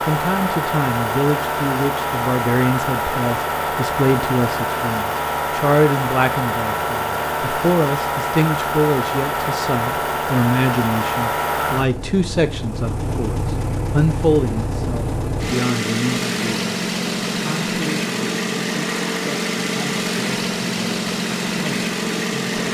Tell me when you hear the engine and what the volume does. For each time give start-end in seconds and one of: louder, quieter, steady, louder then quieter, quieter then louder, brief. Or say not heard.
0.0-22.6 steady.